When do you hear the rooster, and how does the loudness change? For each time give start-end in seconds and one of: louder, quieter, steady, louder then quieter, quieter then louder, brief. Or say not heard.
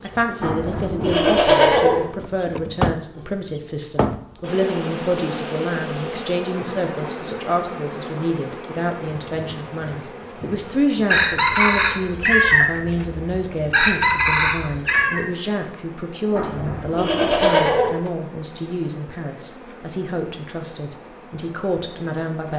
11.1-15.2 quieter then louder.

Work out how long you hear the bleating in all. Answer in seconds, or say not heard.
3 s.